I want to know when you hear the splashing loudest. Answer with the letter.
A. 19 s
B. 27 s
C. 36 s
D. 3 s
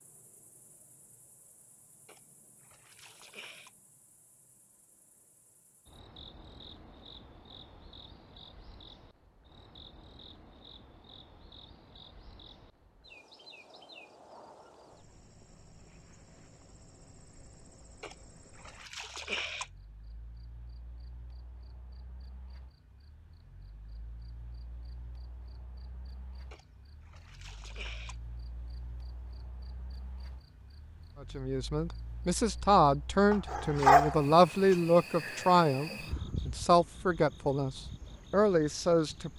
A.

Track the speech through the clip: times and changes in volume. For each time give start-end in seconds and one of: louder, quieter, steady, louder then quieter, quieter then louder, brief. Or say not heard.
31.2-39.3 steady.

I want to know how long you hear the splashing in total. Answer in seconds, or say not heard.
5 s.